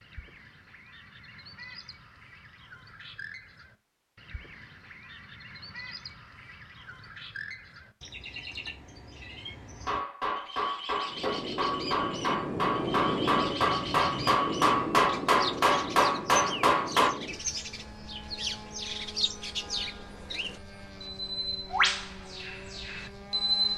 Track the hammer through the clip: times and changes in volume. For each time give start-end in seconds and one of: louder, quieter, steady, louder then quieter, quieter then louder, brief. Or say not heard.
9.8-17.1 louder.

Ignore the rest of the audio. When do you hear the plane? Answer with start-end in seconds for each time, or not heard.
11.1-23.7.